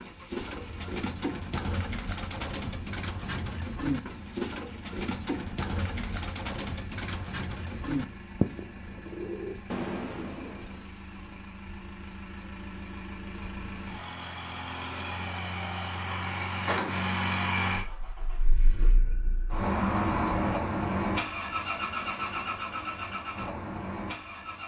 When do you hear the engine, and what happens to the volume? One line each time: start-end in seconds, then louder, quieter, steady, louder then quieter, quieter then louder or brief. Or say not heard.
0.0-24.6 louder.